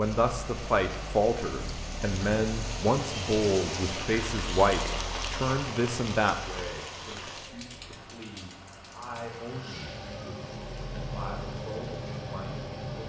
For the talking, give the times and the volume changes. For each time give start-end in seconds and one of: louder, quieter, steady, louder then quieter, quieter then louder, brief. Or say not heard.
0.0-13.0 quieter.